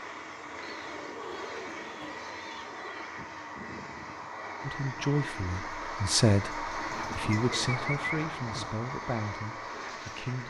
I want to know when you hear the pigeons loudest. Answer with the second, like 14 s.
8 s.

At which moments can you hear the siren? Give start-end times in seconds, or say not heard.
not heard.